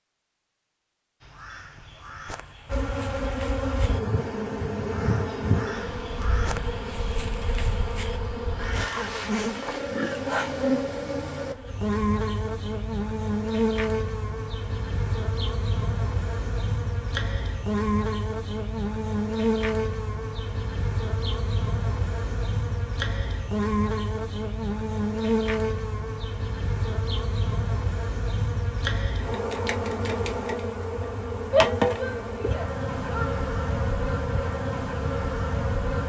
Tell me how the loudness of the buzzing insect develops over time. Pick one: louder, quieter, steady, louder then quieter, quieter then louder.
steady.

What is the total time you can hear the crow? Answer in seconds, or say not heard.
8 s.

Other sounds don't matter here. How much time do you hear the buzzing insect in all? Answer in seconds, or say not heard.
33 s.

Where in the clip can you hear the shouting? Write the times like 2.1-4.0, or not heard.
31.5-33.3.